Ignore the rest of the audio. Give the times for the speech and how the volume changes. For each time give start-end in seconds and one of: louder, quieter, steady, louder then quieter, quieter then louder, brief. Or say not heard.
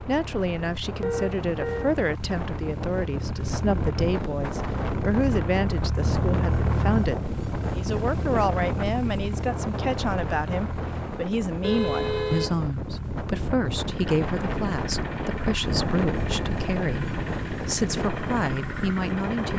0.0-19.5 steady.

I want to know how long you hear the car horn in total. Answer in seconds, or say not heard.
2 s.